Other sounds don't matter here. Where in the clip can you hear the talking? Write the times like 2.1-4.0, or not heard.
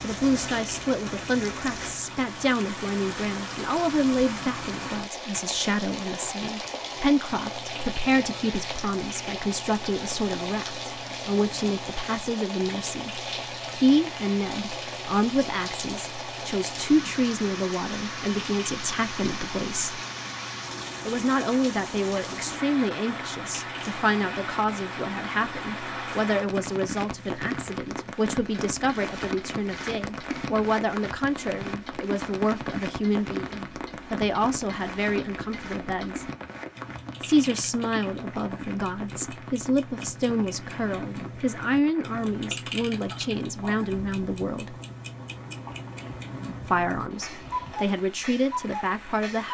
0.0-20.0, 21.1-36.2, 37.2-44.8, 46.6-49.4.